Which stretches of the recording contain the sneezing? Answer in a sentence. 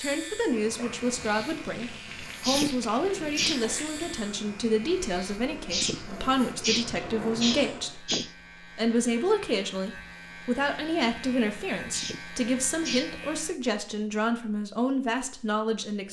You can hear the sneezing from 2.4 to 3.6 s, from 5.7 to 8.3 s and from 11.9 to 13.2 s.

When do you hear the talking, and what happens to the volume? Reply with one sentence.
You can hear the talking from 0.0 to 16.0 s, at a steady volume.